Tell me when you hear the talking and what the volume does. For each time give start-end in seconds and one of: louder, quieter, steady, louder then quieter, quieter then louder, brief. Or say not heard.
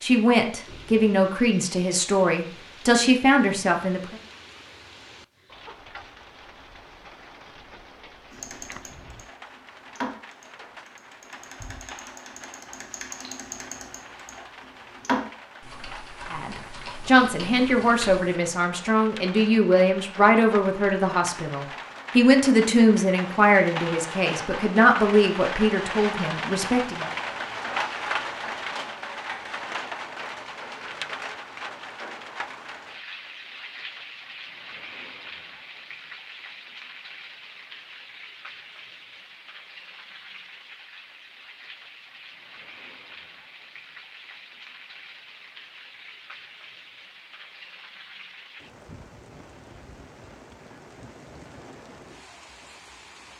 0.0-4.2 steady
16.3-27.1 steady.